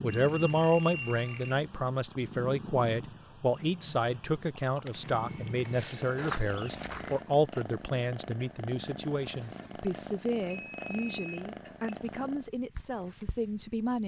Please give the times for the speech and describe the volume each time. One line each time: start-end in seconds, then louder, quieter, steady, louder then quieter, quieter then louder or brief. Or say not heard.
0.0-14.0 quieter.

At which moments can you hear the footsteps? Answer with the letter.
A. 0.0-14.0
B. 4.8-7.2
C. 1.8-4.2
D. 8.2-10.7
B.